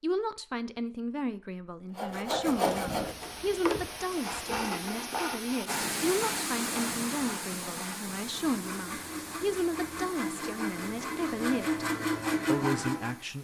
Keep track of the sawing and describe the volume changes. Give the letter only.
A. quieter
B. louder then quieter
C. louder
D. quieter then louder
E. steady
D.